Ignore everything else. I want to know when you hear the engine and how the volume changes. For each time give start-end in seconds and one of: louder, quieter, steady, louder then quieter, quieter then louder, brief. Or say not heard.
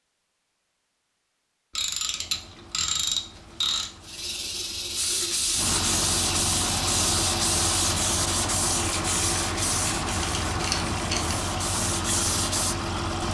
1.9-13.2 louder.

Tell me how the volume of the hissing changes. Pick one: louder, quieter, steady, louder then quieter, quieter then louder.
steady.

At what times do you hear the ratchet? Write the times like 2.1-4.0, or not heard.
1.8-3.9, 9.8-11.3.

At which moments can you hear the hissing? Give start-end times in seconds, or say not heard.
4.0-8.0.